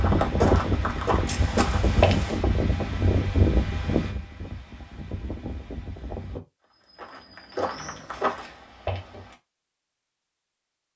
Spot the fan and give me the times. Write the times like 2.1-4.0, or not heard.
0.0-6.4.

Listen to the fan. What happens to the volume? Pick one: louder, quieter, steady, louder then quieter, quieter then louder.
quieter.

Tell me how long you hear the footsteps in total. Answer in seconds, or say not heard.
4 s.